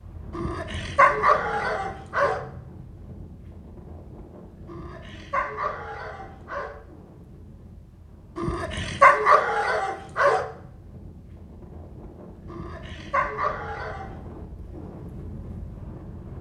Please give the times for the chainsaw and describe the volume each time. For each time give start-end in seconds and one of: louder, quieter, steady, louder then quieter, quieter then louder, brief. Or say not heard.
not heard.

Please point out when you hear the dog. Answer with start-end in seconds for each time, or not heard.
0.3-2.4, 4.7-6.7, 8.3-10.4, 12.4-14.1.